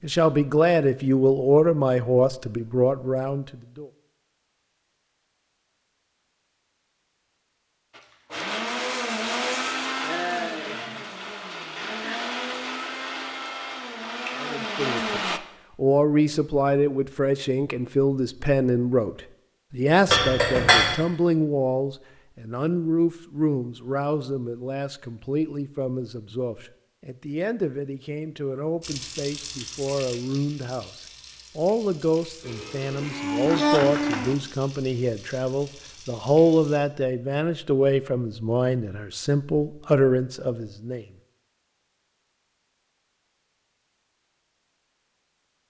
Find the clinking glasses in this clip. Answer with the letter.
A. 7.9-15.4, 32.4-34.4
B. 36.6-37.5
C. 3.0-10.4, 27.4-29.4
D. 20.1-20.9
D.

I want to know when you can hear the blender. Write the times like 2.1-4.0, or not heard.
7.9-15.4, 32.4-34.4.